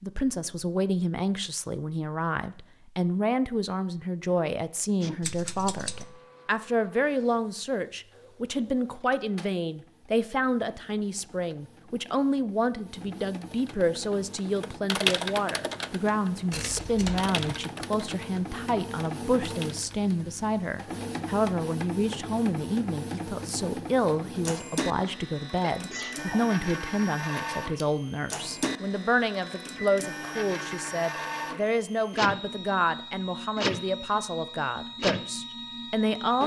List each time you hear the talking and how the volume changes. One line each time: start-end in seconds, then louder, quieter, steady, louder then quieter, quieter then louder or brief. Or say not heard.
0.0-36.4 steady.